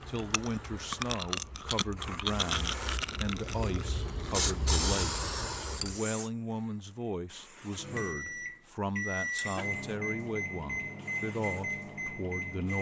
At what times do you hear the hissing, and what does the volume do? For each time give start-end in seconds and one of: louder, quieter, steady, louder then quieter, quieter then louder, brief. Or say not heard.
0.0-12.7 louder then quieter.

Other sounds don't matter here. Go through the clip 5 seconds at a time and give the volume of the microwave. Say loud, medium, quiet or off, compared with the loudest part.
off, loud, loud.